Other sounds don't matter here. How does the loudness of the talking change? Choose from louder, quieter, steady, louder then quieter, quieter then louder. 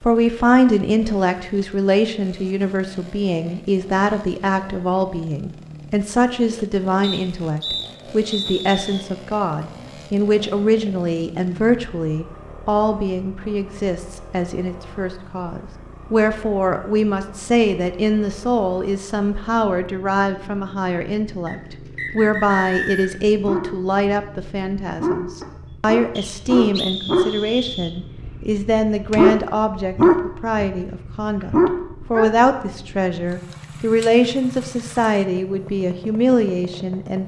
steady.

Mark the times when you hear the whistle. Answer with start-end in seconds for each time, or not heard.
7.0-9.1, 21.4-23.2, 26.1-27.9.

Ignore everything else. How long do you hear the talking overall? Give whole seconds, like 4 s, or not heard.
37 s.